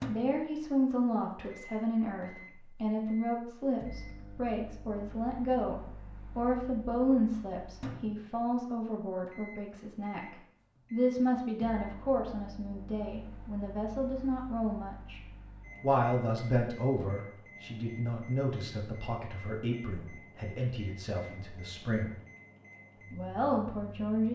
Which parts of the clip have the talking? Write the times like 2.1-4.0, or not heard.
0.1-15.2, 15.8-22.1, 23.1-24.2.